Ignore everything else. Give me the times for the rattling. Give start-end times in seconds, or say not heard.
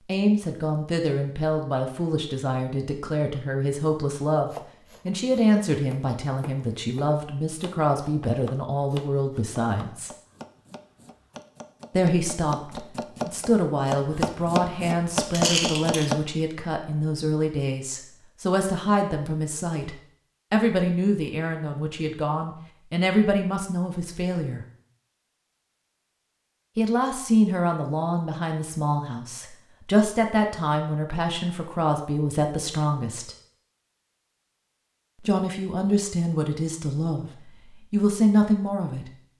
15.3-16.1.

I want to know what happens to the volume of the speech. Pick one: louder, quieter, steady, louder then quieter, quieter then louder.
steady.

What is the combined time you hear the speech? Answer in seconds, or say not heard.
33 s.